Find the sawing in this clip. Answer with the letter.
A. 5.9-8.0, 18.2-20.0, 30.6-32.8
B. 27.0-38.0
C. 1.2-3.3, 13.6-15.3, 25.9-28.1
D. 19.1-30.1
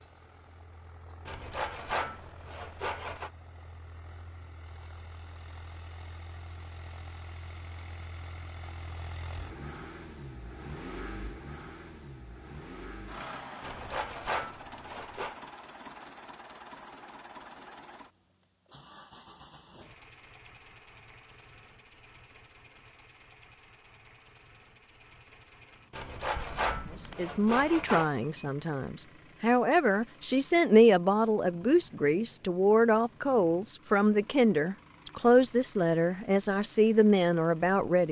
C.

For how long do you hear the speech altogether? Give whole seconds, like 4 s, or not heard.
11 s.